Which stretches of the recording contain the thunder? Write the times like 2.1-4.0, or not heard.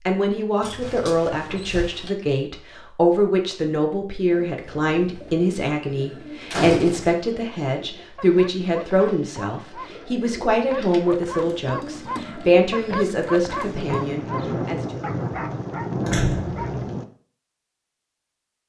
13.7-17.1.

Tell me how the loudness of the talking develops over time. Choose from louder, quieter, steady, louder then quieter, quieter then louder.
steady.